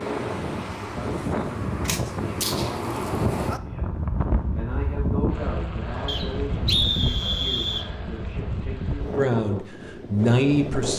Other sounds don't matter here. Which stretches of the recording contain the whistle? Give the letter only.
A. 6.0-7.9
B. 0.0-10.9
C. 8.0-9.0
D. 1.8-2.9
A.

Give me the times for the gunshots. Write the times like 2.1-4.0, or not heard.
1.8-2.9.